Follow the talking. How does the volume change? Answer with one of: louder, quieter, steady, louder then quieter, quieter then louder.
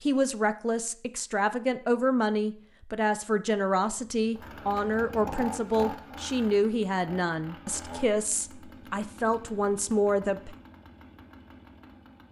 steady.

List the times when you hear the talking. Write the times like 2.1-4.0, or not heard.
0.0-10.6.